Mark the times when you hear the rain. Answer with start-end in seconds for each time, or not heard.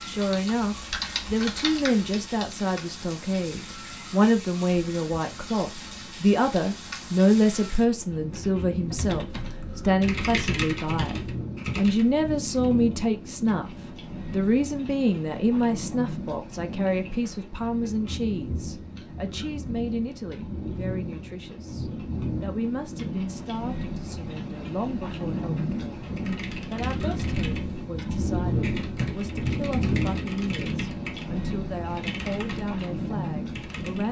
0.0-34.0.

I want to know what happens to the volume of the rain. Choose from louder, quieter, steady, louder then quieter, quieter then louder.
louder.